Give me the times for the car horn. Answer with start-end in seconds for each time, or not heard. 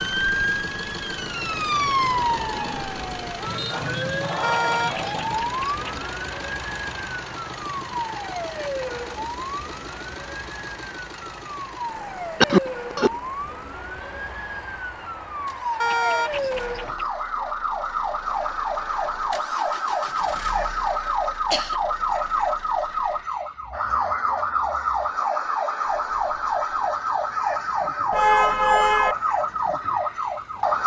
4.4-6.0, 15.8-17.1, 28.1-29.1.